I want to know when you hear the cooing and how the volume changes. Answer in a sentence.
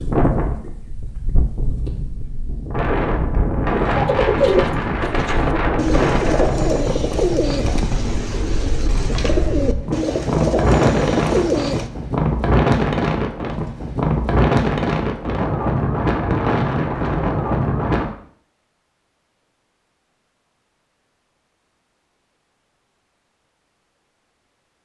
You can hear the cooing from 3.9 to 11.9 s, at a steady volume.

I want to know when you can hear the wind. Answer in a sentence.
The wind can be heard from 0.0 to 18.1 s.